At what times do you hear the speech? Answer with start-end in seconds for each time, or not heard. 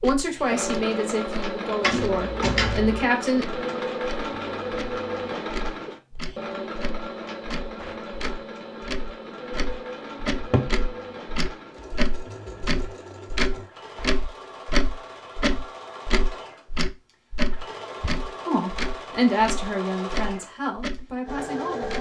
0.0-3.5, 18.4-21.9.